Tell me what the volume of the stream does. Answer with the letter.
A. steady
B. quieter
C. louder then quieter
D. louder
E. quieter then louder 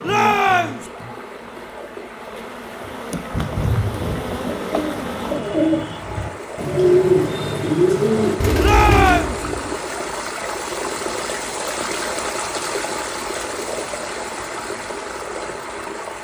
D.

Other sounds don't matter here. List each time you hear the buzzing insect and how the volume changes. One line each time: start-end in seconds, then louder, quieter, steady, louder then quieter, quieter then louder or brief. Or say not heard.
0.0-5.4 quieter then louder.